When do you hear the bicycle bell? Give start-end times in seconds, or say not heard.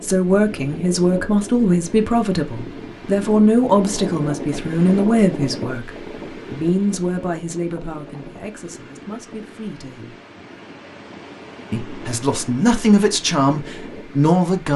not heard.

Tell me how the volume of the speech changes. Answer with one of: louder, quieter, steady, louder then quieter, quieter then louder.
quieter then louder.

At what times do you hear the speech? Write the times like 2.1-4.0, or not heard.
0.0-5.9, 6.5-10.2, 11.7-14.7.